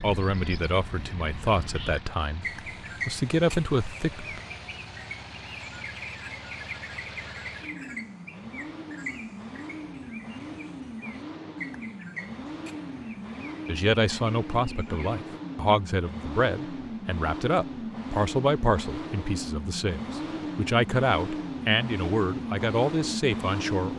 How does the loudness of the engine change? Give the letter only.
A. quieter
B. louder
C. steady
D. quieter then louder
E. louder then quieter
B.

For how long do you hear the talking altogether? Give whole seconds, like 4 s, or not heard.
15 s.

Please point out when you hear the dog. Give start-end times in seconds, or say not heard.
not heard.